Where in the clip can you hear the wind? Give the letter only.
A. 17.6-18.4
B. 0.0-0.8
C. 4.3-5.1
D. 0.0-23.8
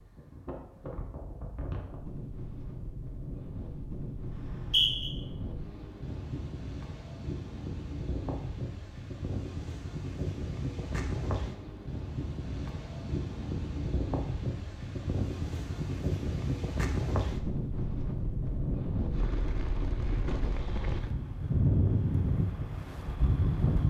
D.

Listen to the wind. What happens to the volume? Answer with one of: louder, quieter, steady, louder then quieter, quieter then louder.
louder.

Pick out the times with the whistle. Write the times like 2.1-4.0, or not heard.
4.3-5.1.